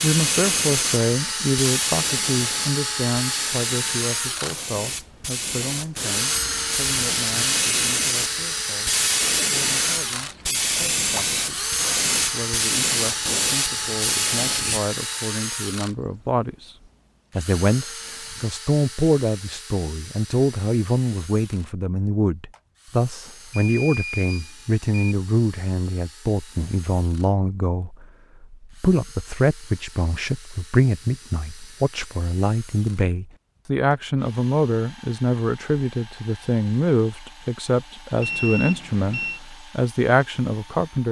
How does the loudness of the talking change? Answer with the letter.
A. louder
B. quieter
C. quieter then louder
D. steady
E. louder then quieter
C.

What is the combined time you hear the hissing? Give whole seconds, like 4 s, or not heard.
15 s.